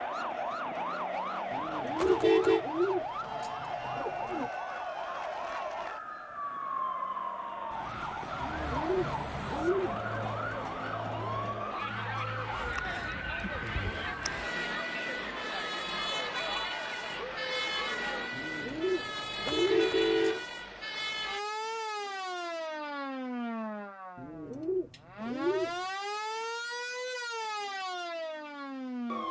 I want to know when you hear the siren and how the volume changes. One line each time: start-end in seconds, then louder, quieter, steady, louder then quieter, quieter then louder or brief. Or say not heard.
0.0-29.2 steady.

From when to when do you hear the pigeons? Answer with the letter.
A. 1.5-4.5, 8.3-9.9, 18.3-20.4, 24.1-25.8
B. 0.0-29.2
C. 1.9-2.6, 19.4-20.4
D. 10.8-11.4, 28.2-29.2
A.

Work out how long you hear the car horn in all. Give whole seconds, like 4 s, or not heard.
2 s.